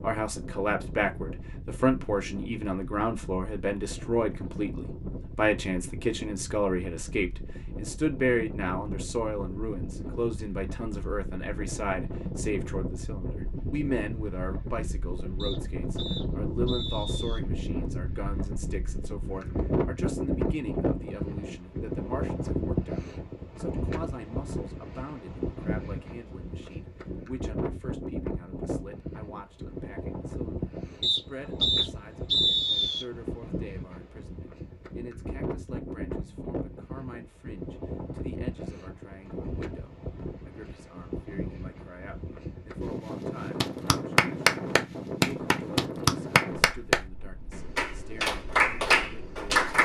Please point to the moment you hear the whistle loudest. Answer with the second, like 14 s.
32 s.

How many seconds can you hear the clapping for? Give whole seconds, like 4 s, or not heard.
6 s.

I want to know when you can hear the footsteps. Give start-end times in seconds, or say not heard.
not heard.